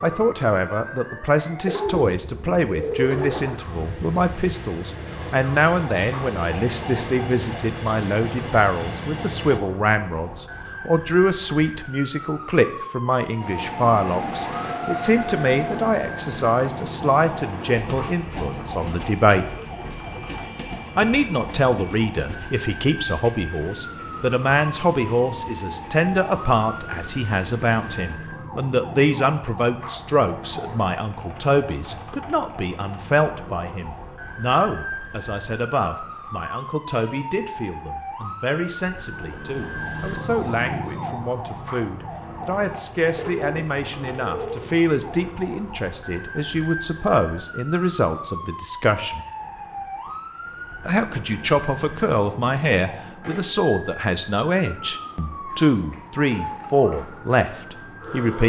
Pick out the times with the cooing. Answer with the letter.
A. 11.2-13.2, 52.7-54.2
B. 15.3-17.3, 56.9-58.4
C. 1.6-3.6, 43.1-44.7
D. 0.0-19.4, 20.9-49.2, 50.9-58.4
C.